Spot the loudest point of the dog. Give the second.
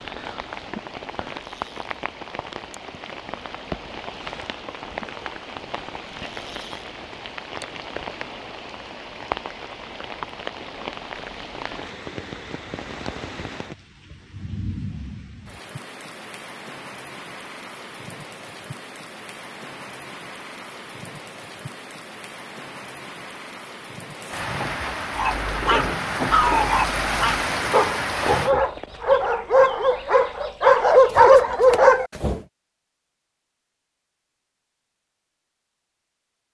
31 s.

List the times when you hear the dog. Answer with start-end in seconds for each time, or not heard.
25.1-32.4.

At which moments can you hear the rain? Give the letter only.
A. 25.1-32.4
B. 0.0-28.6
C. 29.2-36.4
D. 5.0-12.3
B.